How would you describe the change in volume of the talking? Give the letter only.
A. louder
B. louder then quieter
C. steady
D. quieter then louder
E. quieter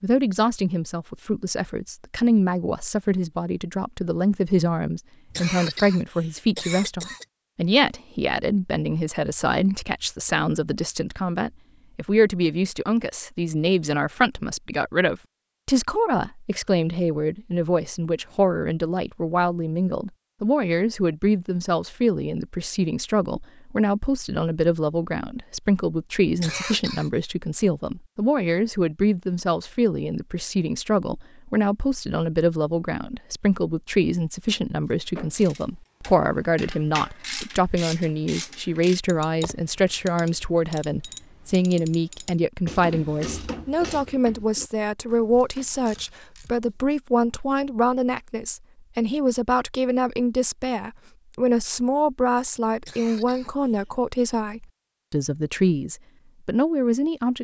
C.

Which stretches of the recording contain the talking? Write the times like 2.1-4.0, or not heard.
0.0-57.3.